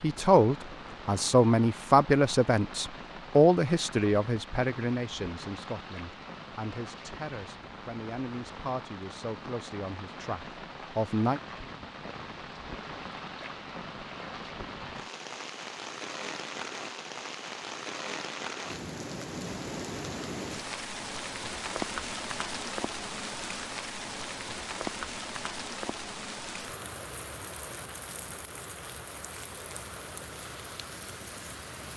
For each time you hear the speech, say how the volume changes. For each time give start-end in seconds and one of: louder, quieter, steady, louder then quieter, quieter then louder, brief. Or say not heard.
0.0-11.4 quieter.